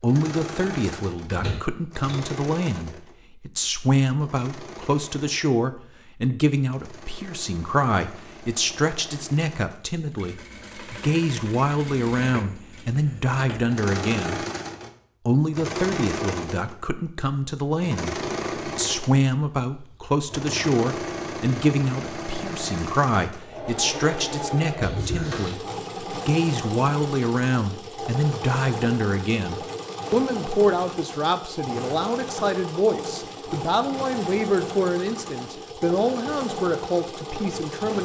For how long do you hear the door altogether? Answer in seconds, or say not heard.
2 s.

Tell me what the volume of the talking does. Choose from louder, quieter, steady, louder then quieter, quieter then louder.
steady.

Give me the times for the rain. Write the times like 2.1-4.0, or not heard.
not heard.